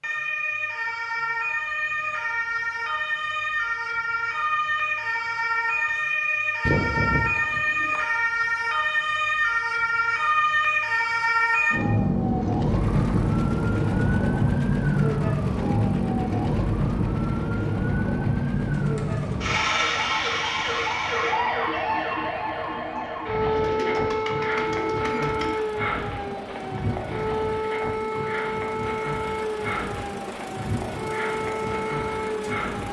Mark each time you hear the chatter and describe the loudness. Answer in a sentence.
The chatter can't be heard in this clip.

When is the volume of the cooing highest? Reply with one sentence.
The loudest moment of the cooing is at 7 seconds.